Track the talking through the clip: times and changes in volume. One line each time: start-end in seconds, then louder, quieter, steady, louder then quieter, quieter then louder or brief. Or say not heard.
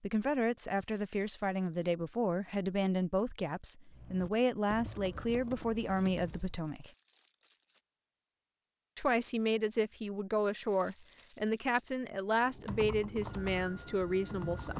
0.0-6.9 steady
8.9-14.7 steady.